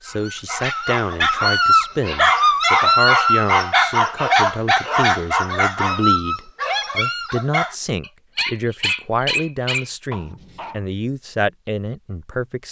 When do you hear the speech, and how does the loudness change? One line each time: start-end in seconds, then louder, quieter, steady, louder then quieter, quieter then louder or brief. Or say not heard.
0.0-12.6 steady.